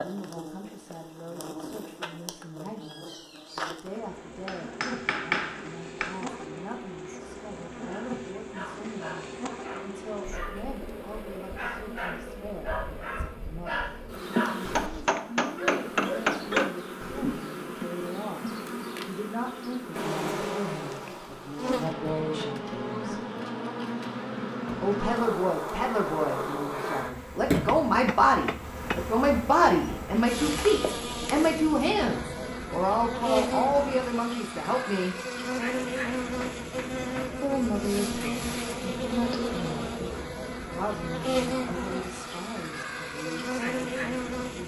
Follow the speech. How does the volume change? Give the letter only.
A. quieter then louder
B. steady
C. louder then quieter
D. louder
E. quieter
C.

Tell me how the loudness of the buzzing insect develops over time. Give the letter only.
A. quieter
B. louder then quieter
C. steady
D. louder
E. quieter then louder
D.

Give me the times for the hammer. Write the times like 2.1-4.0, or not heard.
4.5-6.2, 14.8-16.7, 27.5-29.0, 36.2-37.4.